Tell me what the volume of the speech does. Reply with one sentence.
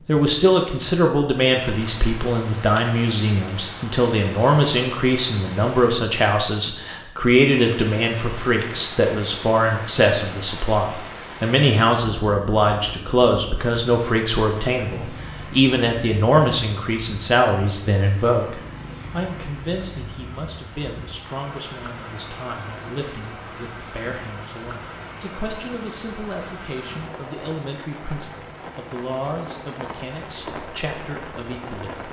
The loudness of the speech goes down.